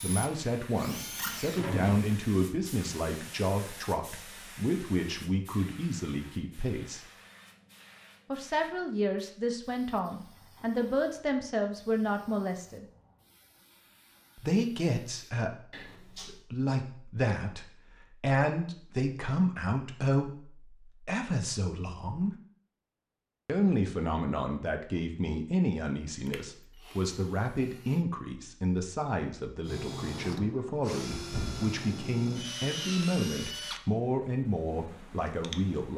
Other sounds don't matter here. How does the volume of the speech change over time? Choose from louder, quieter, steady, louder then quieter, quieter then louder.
steady.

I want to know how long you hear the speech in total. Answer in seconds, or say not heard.
32 s.